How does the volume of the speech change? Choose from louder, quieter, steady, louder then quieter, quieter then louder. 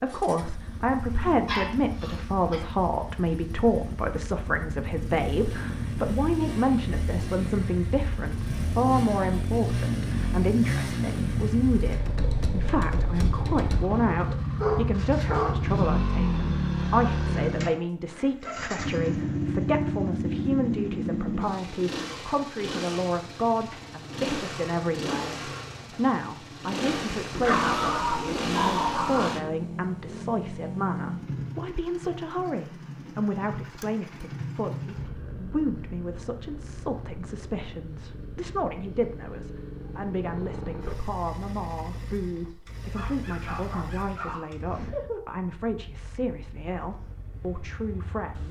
quieter.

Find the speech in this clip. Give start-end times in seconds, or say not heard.
0.0-48.4.